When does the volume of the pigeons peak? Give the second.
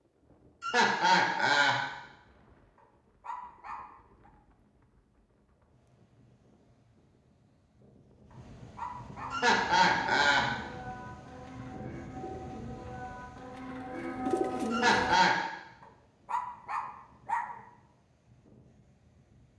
14 s.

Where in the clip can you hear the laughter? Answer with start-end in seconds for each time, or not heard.
0.6-1.8, 9.3-10.5, 14.7-15.3.